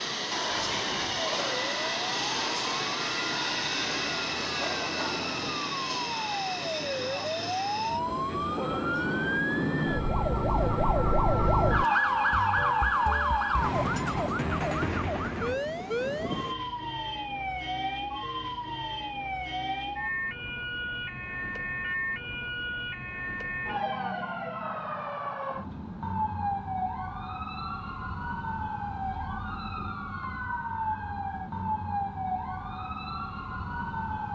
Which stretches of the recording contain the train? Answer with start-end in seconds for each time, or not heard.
0.0-16.6.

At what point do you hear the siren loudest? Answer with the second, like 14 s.
12 s.